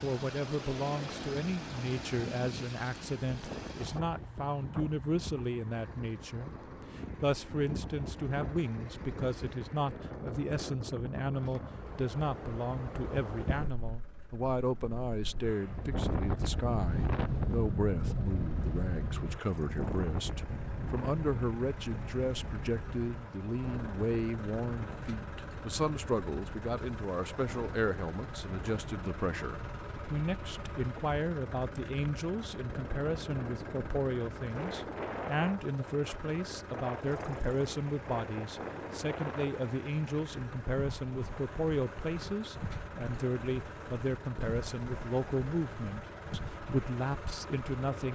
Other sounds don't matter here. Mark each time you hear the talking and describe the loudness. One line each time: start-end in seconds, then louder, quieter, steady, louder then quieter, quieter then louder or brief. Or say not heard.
0.0-48.1 steady.